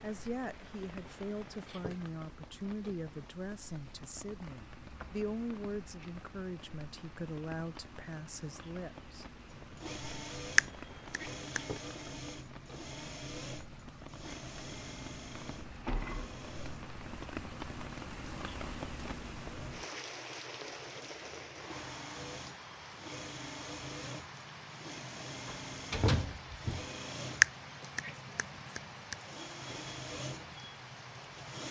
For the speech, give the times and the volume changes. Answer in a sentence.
You can hear the speech from 0.0 to 9.2 s, at a steady volume.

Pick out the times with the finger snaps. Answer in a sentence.
You can hear the finger snaps from 10.6 to 11.6 s and from 27.4 to 29.1 s.